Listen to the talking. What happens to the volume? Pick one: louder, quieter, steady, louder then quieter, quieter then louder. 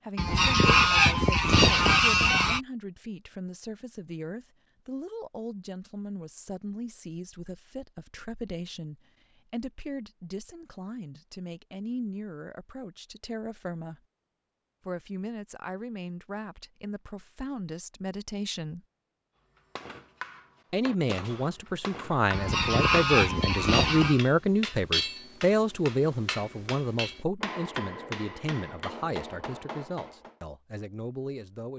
louder then quieter.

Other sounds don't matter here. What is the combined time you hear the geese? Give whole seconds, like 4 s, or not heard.
4 s.